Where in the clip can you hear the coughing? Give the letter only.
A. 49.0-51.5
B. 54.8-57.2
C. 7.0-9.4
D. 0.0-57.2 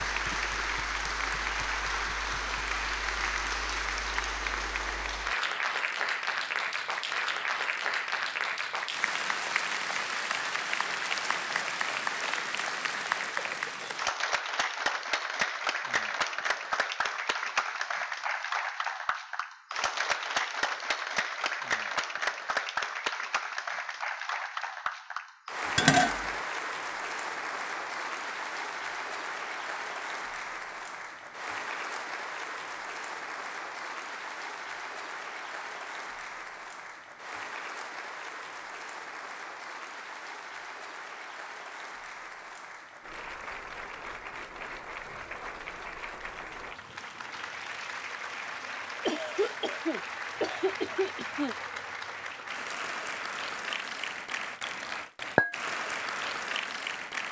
A.